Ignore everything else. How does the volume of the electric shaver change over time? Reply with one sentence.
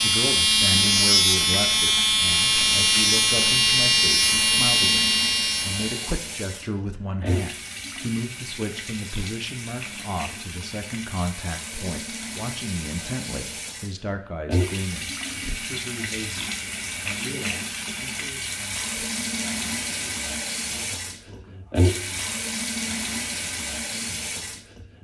The volume of the electric shaver stays about the same.